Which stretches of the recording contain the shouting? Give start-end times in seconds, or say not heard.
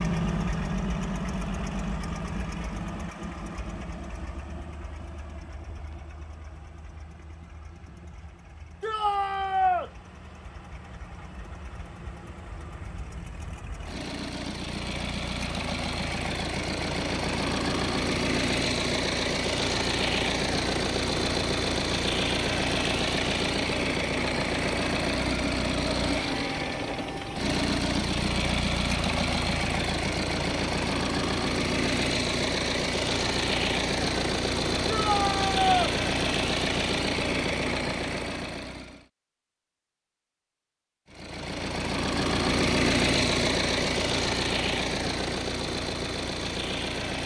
8.8-9.9, 34.9-36.0.